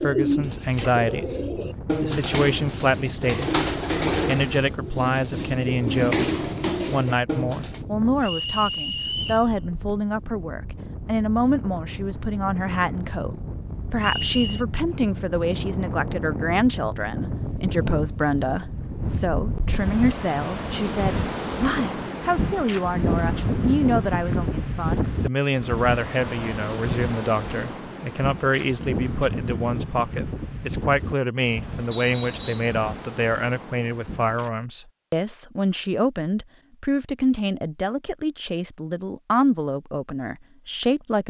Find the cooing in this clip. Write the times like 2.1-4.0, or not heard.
0.0-7.8.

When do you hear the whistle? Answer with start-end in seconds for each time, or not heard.
8.2-9.4, 14.0-14.7, 31.9-32.8.